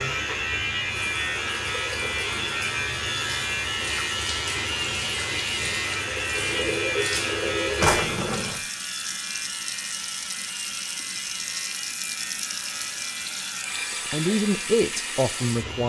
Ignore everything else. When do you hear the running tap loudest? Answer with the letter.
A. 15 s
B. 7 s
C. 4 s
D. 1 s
B.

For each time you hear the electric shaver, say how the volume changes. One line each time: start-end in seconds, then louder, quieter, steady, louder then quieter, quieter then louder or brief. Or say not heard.
0.0-15.8 quieter.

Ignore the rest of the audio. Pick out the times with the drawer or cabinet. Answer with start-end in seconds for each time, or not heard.
7.8-8.6.